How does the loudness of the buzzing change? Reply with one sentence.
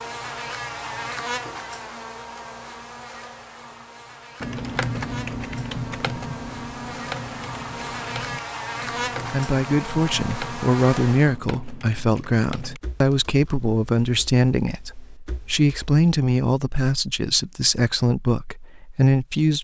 The volume of the buzzing goes down, then up.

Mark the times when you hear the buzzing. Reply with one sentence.
The buzzing can be heard from 0.0 to 11.4 s.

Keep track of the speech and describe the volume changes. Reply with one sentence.
The loudness of the speech stays about the same.